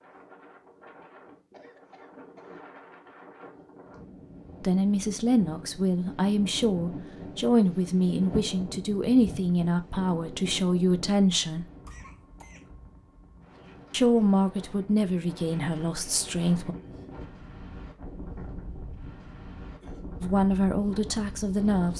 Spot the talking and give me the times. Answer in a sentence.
The talking can be heard from 4.6 to 11.7 s, from 13.9 to 16.8 s and from 20.2 to 21.9 s.